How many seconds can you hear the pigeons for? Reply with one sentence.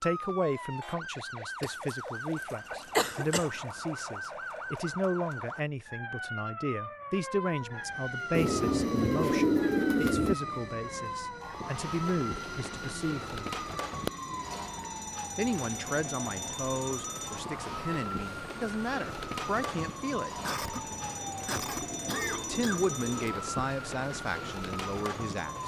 You can hear the pigeons for 4 seconds altogether.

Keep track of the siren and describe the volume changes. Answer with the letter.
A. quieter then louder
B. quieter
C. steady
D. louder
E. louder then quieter
C.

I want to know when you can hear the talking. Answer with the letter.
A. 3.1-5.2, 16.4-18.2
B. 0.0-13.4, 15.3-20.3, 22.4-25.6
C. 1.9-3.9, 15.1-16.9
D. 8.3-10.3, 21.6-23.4
B.